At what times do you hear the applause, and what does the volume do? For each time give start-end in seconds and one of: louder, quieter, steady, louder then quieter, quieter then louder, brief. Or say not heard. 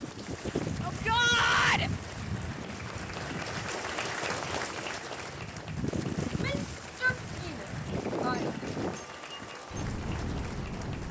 0.0-11.0 louder then quieter.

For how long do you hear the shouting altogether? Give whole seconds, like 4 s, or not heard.
3 s.